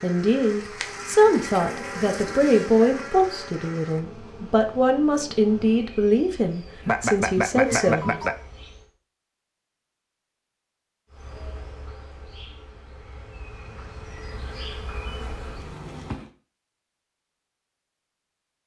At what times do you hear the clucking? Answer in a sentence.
You can hear the clucking from 6.8 to 8.3 s.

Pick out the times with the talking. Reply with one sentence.
You can hear the talking from 0.0 to 8.2 s.